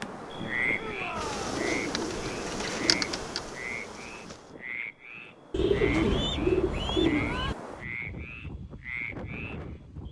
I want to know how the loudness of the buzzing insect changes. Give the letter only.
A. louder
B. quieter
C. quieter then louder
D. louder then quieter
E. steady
D.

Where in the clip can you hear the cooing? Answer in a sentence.
You can hear the cooing from 1.1 to 3.1 s and from 5.5 to 7.5 s.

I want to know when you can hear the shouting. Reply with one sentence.
The shouting can be heard from 0.7 to 1.6 s and from 7.0 to 7.5 s.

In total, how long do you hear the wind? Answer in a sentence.
The wind can be heard for 10 seconds in total.